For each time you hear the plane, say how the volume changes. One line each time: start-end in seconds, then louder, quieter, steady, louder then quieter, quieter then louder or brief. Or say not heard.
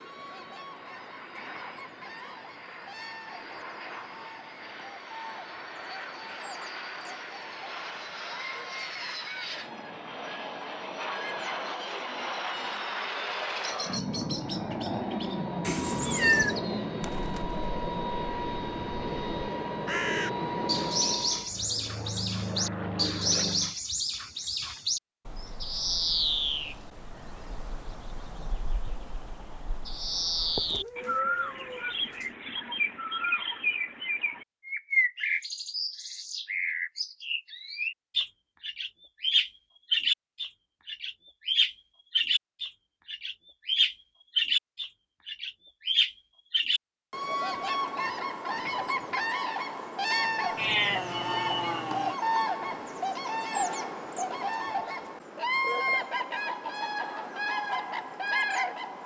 0.0-23.8 louder.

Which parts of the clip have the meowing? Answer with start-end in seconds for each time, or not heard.
15.6-16.6, 30.6-32.2, 50.5-52.1.